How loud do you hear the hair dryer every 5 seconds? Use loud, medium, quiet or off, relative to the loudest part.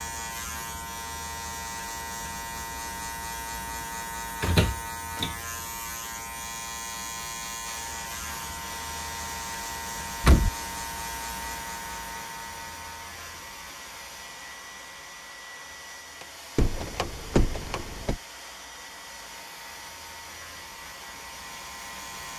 off, loud, loud, loud, loud.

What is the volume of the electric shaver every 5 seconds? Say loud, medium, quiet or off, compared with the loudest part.
loud, loud, loud, quiet, medium.